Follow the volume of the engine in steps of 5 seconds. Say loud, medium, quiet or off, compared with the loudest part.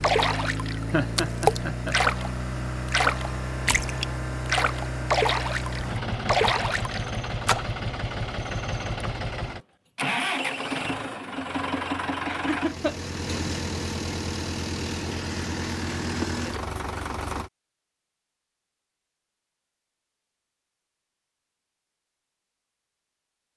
loud, loud, loud, loud, off.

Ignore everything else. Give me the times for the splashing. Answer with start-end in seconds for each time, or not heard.
0.0-7.7.